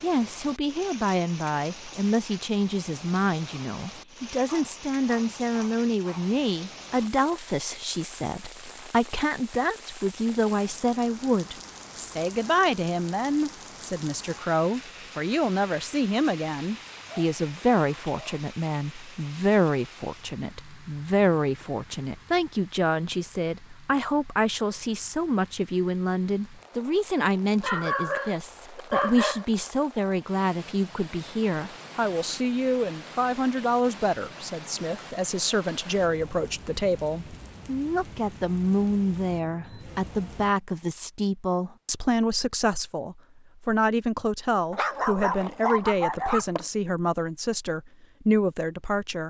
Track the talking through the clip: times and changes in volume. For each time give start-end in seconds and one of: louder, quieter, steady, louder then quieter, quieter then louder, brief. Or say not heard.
0.0-49.2 steady.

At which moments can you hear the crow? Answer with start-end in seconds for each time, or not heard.
not heard.